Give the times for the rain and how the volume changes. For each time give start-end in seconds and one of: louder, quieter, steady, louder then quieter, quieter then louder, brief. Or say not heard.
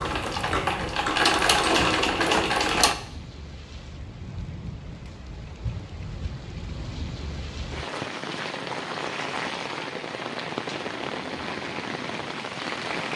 0.0-13.1 louder.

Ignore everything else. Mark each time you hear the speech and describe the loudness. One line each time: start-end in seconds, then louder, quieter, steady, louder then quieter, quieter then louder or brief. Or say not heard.
not heard.